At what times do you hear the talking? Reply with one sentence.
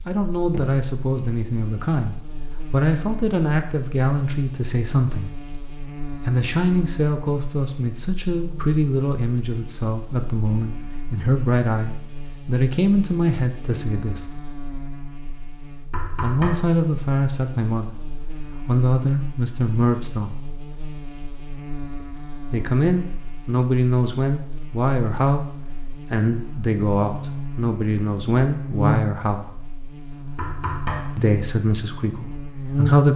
You can hear the talking from 0.1 to 5.5 s, from 6.2 to 14.4 s, from 16.2 to 20.4 s, from 22.5 to 29.6 s and from 31.1 to 33.1 s.